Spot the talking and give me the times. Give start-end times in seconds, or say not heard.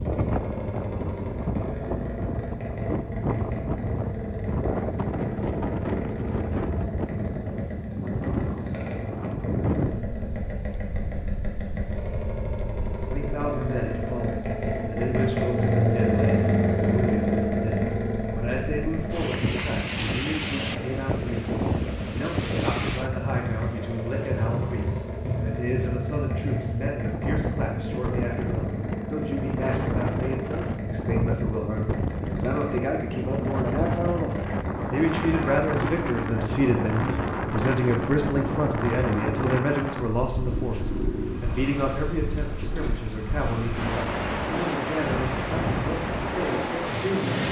13.1-47.4.